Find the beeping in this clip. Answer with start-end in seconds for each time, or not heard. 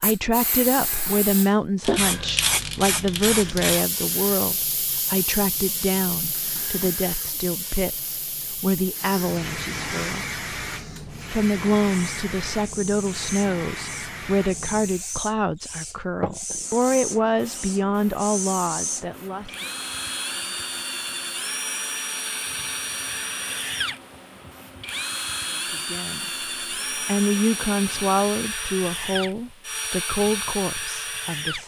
not heard.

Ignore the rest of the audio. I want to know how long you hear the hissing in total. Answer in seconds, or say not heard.
29 s.